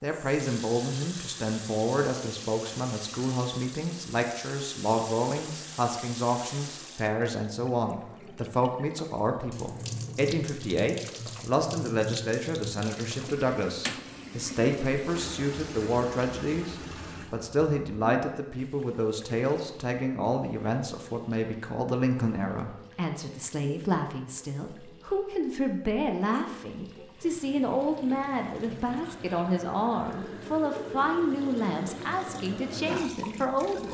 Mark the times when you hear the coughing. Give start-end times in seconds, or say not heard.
not heard.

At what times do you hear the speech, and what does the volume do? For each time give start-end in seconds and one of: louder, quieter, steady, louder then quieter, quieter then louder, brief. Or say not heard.
0.0-33.9 steady.